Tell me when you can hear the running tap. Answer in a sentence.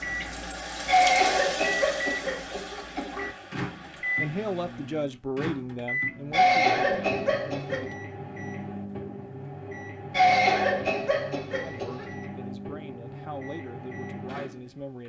The running tap can be heard from 0.0 to 5.1 s.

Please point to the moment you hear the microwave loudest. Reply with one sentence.
The volume of the microwave peaks at 4 seconds.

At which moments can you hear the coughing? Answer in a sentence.
You can hear the coughing from 0.8 to 3.3 s, from 6.3 to 7.9 s and from 10.1 to 12.1 s.